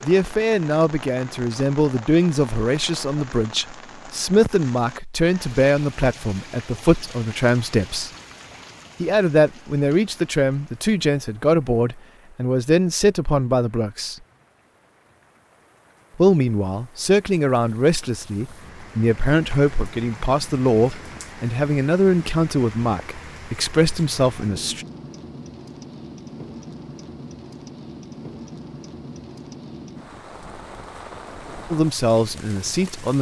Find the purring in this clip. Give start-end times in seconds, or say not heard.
not heard.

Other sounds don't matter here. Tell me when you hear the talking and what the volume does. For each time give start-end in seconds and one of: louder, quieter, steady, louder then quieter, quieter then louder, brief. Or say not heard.
0.0-8.1 steady
9.0-14.2 steady
16.1-24.9 steady
31.7-33.1 brief.